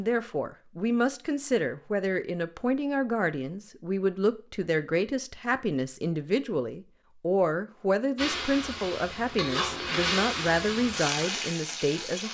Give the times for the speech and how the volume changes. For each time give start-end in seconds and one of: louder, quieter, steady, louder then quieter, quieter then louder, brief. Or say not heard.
0.0-12.2 steady.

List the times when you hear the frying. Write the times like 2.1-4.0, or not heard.
8.2-12.2.